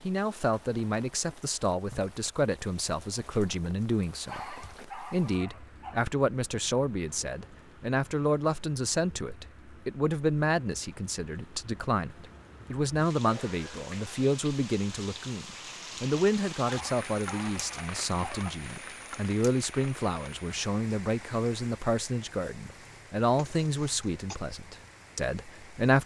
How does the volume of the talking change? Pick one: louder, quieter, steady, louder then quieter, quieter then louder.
steady.